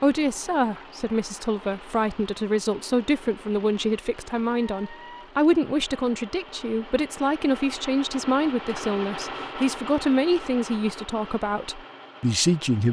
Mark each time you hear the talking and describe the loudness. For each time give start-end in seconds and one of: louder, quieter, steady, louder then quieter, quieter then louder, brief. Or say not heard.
0.0-12.8 steady.